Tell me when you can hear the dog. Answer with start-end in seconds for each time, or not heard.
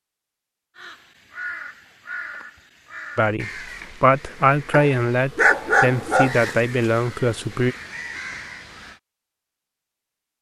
4.7-6.3.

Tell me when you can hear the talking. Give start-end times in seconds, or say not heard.
3.1-7.8.